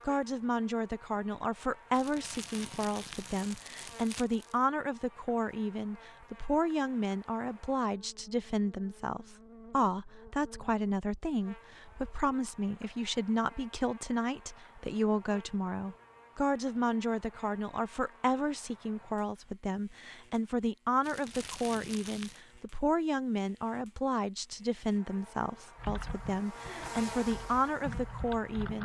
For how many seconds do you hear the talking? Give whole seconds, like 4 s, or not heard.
29 s.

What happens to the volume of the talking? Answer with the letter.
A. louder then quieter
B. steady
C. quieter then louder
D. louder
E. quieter
B.